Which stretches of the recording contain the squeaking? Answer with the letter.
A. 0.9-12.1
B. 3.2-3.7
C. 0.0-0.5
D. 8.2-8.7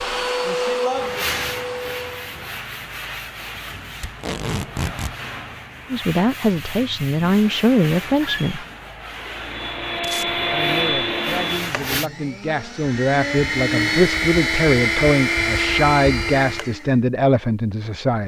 D.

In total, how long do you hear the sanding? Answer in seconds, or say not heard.
11 s.